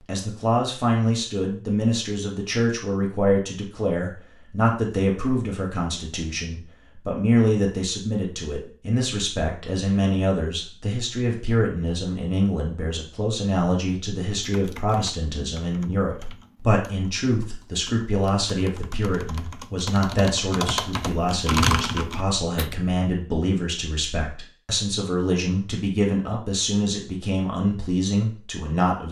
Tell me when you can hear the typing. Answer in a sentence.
The typing can be heard from 14.4 to 22.9 s.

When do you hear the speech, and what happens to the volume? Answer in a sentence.
You can hear the speech from 0.1 to 29.0 s, at a steady volume.